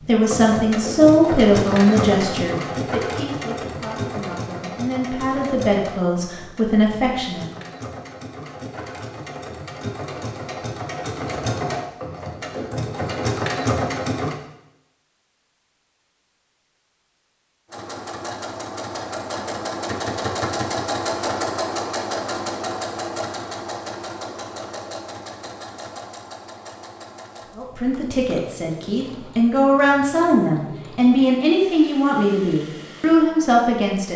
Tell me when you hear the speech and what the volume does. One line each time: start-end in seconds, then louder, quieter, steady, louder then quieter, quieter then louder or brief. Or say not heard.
0.1-7.5 quieter then louder
27.6-34.1 louder.